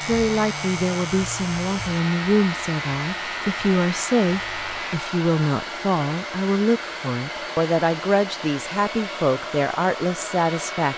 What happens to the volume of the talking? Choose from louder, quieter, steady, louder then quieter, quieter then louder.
steady.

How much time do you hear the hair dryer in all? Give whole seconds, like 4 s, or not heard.
11 s.